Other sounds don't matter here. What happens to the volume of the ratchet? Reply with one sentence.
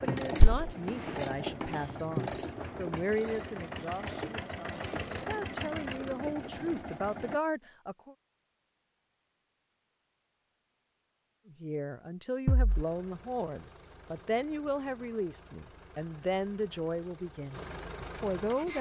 The loudness of the ratchet goes down.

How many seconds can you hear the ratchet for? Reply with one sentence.
The ratchet can be heard for 7 seconds in total.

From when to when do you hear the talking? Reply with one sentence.
The talking can be heard from 0.0 to 8.2 s and from 11.4 to 18.7 s.